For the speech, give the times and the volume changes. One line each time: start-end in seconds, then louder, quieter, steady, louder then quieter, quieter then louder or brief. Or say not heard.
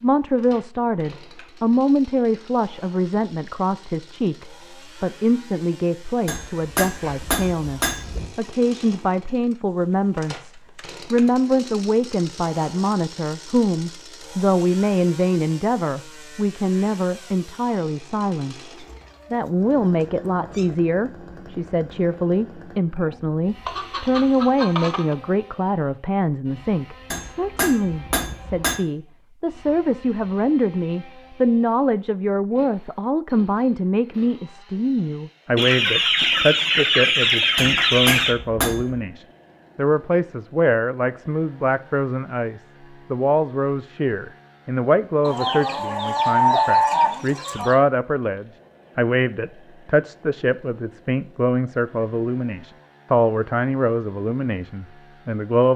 0.0-55.7 steady.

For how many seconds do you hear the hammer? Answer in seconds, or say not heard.
5 s.